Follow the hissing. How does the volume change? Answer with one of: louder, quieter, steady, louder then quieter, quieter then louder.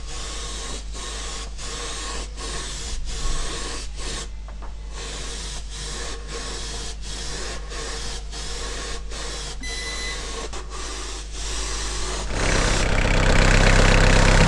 steady.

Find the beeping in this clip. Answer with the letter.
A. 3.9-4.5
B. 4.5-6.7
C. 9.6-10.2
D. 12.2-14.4
C.